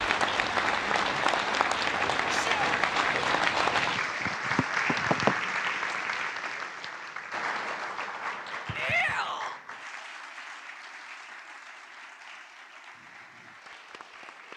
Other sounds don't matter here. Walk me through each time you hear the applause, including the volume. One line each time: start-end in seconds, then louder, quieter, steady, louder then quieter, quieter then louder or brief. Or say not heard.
0.0-14.5 quieter.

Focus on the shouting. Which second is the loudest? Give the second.
9 s.